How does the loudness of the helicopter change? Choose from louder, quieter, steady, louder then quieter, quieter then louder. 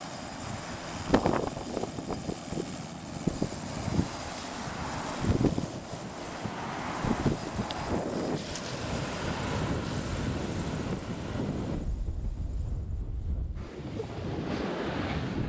quieter.